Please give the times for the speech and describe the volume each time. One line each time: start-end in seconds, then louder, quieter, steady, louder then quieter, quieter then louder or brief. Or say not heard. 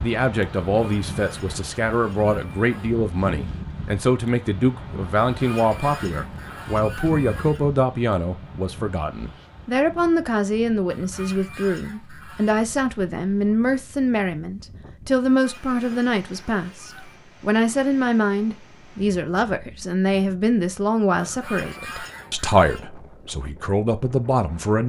0.0-24.8 steady.